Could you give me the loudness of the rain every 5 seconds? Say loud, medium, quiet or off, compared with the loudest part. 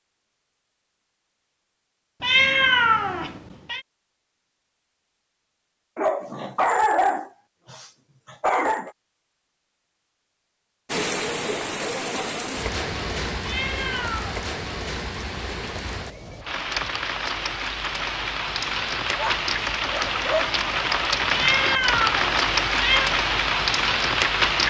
off, off, medium, medium, loud.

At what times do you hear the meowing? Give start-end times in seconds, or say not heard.
2.2-3.8, 13.4-14.4, 21.3-23.1.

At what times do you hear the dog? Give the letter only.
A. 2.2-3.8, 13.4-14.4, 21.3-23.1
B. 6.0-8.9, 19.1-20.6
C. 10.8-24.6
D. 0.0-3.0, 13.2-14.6
B.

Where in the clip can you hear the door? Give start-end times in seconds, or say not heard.
not heard.